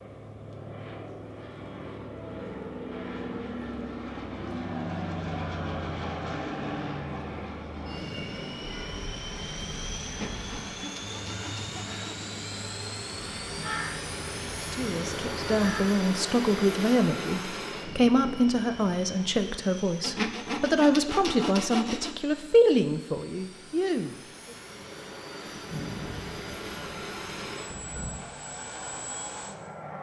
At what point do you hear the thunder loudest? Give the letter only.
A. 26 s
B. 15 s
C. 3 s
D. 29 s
A.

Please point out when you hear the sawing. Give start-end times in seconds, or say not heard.
10.1-12.3, 20.0-22.1.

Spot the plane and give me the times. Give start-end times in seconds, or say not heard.
0.0-29.9.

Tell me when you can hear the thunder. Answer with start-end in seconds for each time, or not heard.
25.4-28.1.